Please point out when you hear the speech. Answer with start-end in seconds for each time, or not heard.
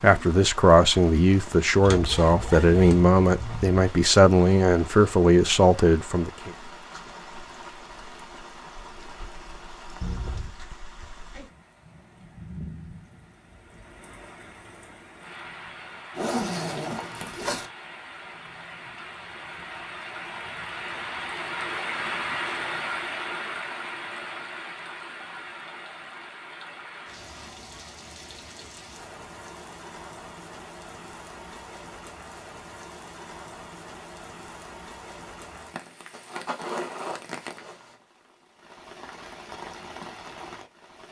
0.0-6.5.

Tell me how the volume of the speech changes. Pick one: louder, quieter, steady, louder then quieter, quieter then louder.
steady.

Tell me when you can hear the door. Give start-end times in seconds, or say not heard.
10.0-10.8.